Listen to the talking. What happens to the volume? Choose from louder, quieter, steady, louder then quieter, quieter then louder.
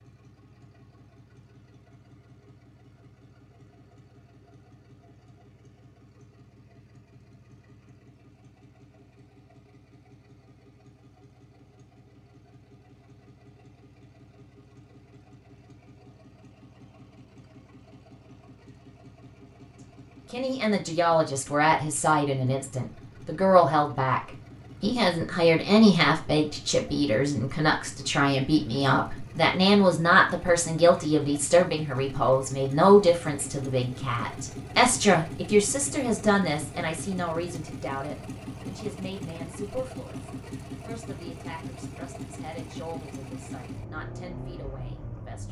quieter.